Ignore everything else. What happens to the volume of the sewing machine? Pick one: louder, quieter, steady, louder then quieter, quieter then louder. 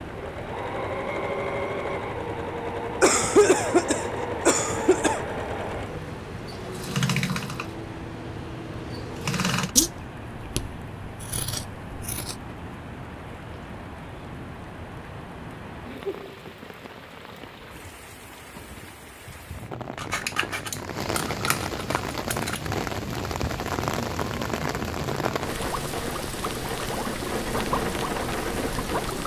quieter.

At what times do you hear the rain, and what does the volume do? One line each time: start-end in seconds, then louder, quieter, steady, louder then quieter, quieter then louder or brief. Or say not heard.
0.0-29.2 louder.